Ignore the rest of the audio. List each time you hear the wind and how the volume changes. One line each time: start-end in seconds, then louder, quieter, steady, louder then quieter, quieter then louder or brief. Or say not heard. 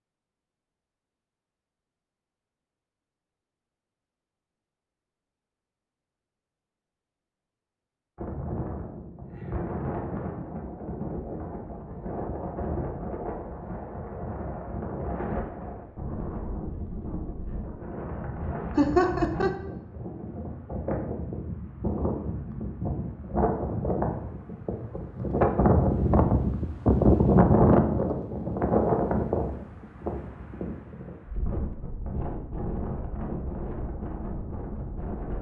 8.2-35.3 louder then quieter.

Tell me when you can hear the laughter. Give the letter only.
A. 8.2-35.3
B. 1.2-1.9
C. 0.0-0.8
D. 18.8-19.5
D.